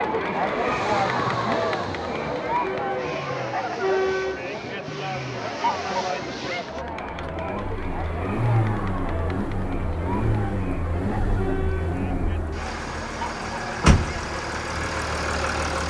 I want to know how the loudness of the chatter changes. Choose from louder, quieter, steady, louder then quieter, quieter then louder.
quieter.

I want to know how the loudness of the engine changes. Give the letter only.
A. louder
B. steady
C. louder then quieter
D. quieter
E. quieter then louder
A.